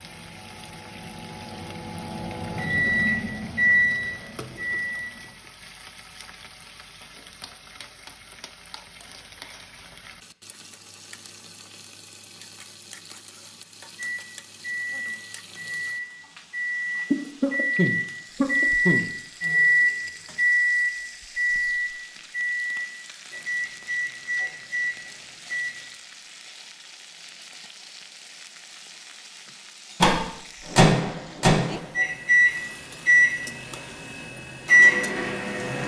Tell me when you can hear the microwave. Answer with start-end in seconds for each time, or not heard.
0.0-5.3, 13.9-25.9, 30.0-35.8.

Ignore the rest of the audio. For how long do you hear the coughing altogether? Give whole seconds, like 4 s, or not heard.
2 s.